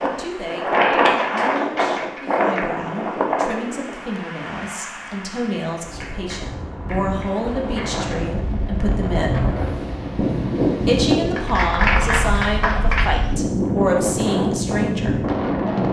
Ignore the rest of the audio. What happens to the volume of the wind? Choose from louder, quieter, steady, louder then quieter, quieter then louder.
quieter then louder.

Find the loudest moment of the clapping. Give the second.
12 s.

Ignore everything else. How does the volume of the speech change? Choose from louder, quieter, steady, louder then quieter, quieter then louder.
louder.